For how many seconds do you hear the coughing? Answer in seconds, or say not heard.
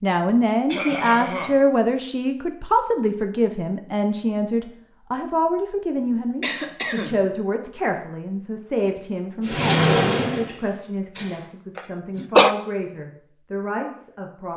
3 s.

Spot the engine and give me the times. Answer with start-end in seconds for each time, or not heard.
9.4-11.5.